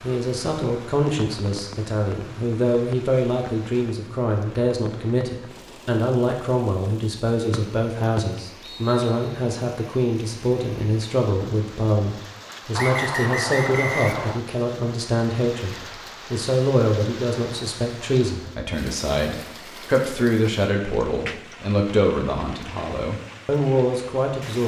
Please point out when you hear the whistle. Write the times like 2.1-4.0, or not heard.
7.5-9.4, 12.8-14.4.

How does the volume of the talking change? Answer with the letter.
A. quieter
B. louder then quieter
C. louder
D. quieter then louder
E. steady
E.